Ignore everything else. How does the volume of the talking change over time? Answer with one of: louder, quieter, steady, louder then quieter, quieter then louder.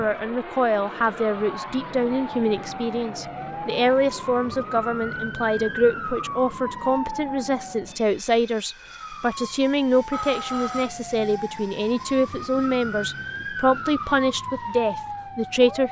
steady.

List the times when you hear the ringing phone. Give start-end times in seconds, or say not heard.
10.1-10.9.